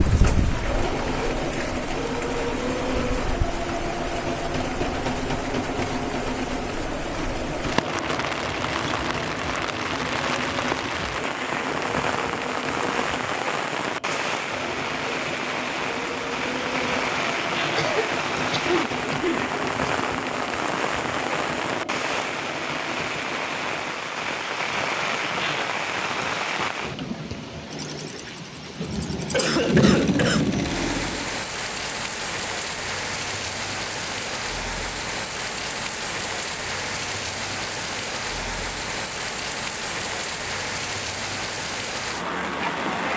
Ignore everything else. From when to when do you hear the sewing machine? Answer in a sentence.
You can hear the sewing machine from 0.1 to 24.1 s and from 26.7 to 31.4 s.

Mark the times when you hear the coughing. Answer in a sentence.
You can hear the coughing from 17.8 to 19.9 s and from 29.3 to 30.6 s.